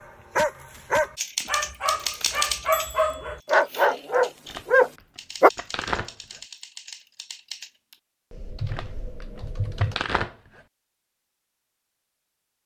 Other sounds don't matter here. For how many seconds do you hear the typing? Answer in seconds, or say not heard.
9 s.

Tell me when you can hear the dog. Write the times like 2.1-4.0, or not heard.
0.0-5.5.